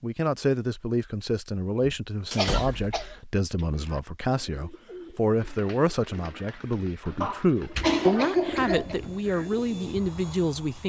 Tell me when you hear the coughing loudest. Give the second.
8 s.